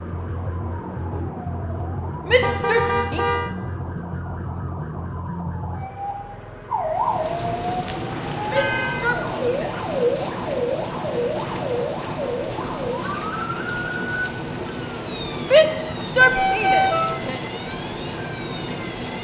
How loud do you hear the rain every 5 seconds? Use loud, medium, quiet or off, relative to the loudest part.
off, loud, loud, loud.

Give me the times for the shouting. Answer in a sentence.
The shouting can be heard from 2.2 to 3.2 s, from 8.4 to 9.8 s and from 15.4 to 17.4 s.